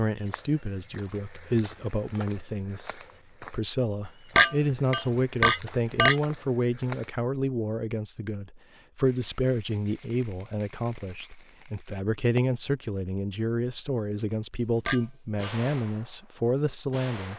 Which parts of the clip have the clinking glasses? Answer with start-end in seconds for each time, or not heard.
4.3-6.2, 14.8-15.6.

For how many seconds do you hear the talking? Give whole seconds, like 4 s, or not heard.
17 s.